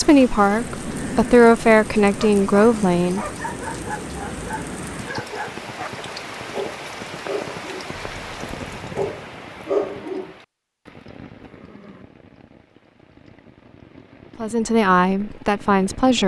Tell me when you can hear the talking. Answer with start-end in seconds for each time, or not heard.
0.0-3.2, 14.4-16.2.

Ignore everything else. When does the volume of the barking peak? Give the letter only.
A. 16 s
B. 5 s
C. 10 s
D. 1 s
C.